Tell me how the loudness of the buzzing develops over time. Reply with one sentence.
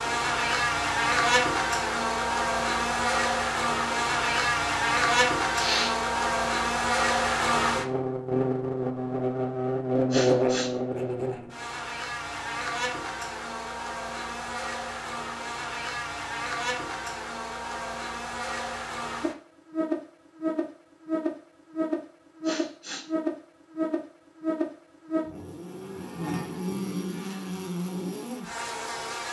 The loudness of the buzzing goes down.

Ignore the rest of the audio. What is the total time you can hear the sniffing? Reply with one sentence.
You can hear the sniffing for 2 seconds altogether.